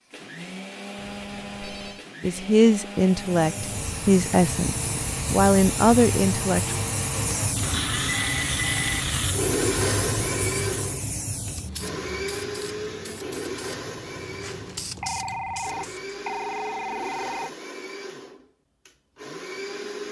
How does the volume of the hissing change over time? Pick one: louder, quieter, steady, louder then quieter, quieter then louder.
quieter.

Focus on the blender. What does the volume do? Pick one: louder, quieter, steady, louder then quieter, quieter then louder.
louder then quieter.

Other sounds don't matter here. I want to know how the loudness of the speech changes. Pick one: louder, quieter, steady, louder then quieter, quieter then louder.
steady.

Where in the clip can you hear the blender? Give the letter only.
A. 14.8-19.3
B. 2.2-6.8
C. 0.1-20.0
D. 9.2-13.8
C.